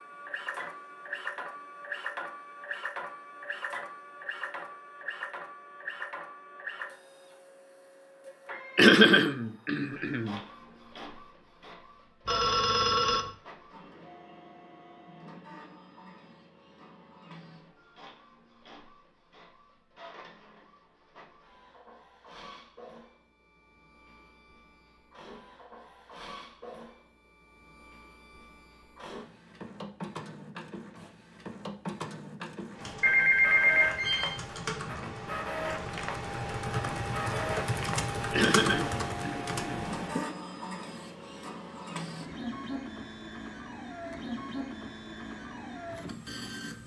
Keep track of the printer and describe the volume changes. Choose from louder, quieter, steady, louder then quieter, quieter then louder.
quieter then louder.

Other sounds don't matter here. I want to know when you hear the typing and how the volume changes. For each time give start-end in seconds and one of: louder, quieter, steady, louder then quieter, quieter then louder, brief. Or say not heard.
32.7-40.2 louder.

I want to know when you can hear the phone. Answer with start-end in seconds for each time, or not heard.
12.2-13.3, 33.0-34.4.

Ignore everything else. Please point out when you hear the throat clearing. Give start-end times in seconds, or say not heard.
8.8-10.4, 38.3-40.0.